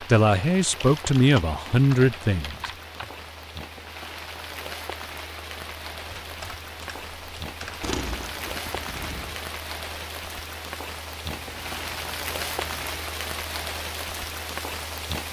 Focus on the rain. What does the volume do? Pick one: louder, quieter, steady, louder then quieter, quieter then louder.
louder.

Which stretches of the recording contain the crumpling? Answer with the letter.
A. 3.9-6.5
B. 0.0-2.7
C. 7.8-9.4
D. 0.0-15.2
C.